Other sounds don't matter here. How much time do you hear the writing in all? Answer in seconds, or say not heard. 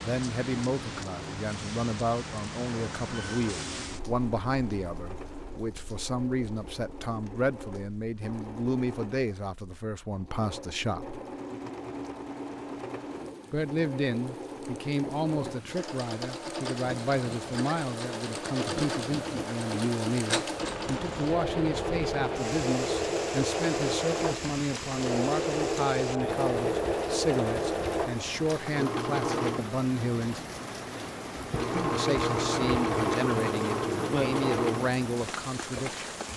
not heard.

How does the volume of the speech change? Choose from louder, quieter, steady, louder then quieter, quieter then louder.
steady.